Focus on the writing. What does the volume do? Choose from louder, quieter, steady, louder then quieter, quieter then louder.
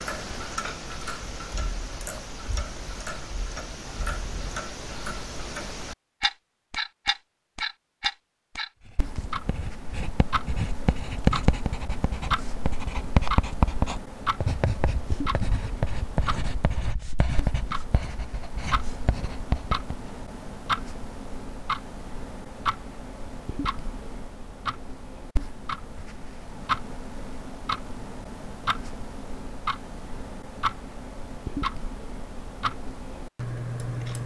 quieter.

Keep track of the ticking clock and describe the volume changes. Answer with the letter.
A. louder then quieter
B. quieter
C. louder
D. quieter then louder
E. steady
E.